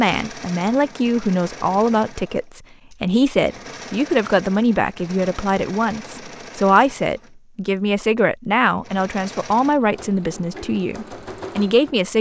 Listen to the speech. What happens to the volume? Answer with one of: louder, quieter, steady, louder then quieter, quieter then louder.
steady.